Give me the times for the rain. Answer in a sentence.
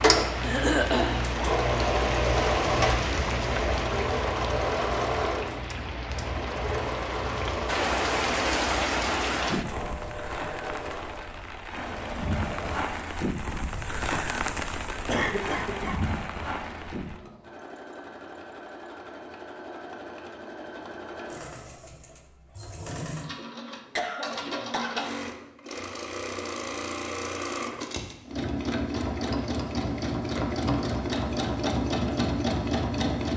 The rain can be heard from 0.0 to 17.2 s.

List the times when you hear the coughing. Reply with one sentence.
The coughing can be heard from 0.4 to 1.2 s, from 15.1 to 16.0 s and from 23.6 to 25.2 s.